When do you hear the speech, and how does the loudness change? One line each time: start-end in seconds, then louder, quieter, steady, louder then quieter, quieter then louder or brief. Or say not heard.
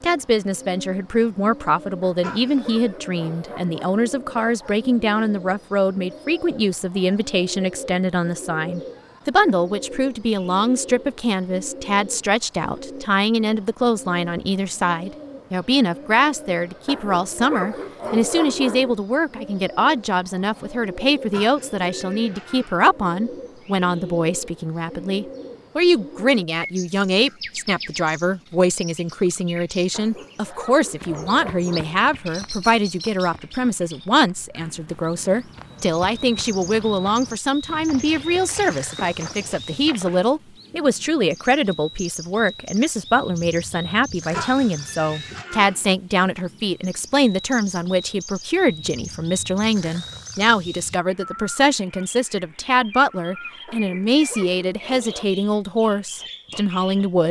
0.0-57.2 steady.